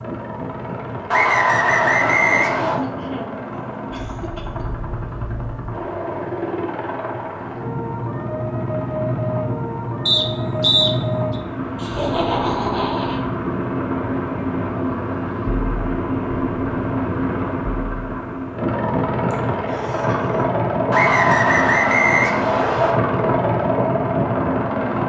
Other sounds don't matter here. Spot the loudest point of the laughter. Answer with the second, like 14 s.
12 s.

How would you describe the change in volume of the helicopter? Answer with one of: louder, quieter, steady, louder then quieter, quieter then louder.
louder.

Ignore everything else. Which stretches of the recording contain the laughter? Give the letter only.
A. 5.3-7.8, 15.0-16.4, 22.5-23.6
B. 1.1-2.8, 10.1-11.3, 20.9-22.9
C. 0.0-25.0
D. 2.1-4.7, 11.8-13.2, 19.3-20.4
D.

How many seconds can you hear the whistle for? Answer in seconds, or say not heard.
5 s.